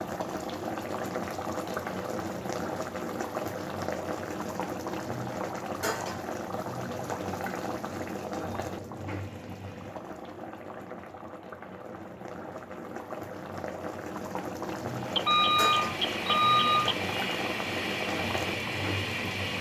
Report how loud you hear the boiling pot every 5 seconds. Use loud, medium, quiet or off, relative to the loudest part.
loud, loud, medium, loud.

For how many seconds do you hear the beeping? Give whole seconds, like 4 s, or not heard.
2 s.